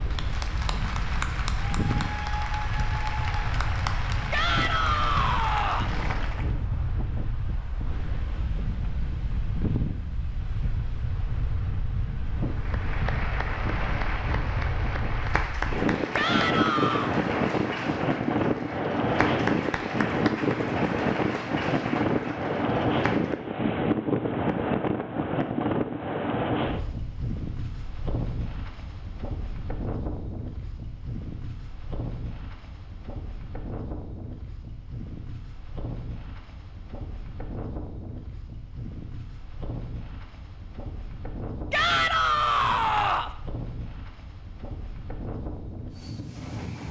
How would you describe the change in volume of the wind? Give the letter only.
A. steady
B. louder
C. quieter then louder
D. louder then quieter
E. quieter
D.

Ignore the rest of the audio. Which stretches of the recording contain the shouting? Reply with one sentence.
You can hear the shouting from 4.3 to 5.9 s, from 16.1 to 17.1 s and from 41.7 to 43.4 s.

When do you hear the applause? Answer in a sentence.
You can hear the applause from 0.0 to 6.5 s and from 12.6 to 23.4 s.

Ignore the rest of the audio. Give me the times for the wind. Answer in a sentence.
You can hear the wind from 0.0 to 46.8 s.